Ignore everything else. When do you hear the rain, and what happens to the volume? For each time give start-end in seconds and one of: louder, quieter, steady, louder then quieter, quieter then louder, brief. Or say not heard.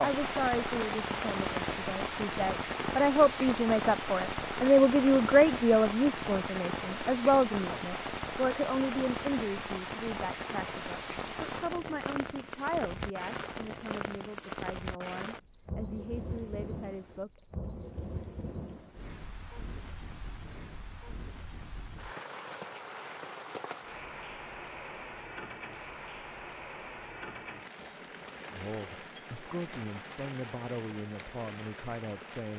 0.0-32.5 quieter.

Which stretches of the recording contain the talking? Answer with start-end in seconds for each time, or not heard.
0.0-17.3, 28.5-32.5.